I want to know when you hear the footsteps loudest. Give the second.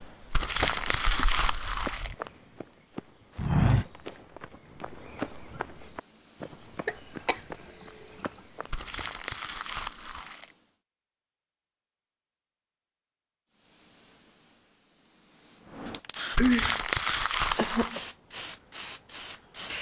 4 s.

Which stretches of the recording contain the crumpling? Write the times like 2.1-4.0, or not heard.
0.3-2.1, 8.7-10.5, 16.3-17.9.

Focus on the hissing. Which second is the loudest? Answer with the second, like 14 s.
17 s.